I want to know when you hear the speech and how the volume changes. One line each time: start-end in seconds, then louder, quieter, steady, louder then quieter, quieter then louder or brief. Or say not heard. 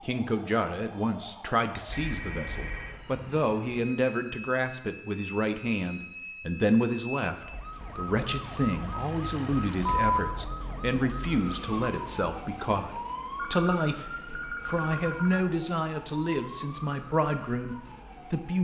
0.0-18.5 steady.